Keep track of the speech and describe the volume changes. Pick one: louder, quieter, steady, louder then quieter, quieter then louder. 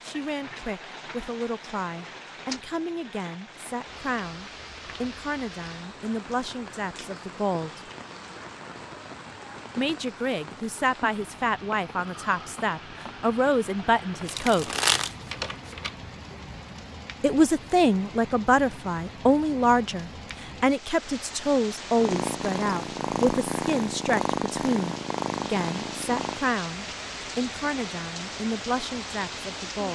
louder then quieter.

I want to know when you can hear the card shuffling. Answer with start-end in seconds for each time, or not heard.
14.2-15.9.